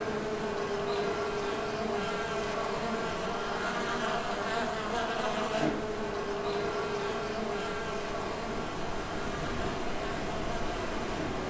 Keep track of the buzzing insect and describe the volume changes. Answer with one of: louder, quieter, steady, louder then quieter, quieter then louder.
quieter.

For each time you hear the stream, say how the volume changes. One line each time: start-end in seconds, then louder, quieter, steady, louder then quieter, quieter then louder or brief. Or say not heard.
0.1-11.4 louder.